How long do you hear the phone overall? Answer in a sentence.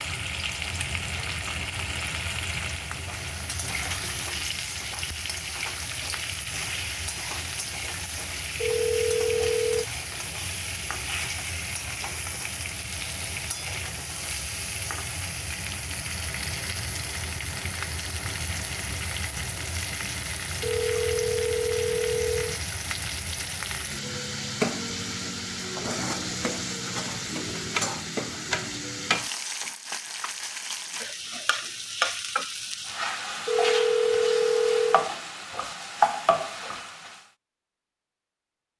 You can hear the phone for 5 seconds altogether.